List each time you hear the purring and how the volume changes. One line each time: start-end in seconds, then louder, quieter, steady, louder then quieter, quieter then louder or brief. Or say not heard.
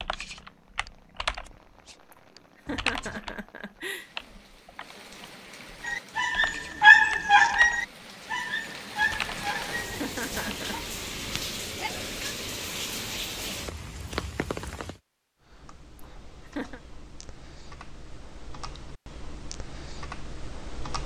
not heard.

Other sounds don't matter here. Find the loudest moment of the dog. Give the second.
7 s.